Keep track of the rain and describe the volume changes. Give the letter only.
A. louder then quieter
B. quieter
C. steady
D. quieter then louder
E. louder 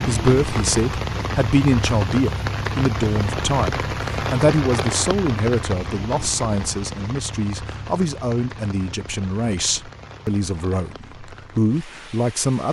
B.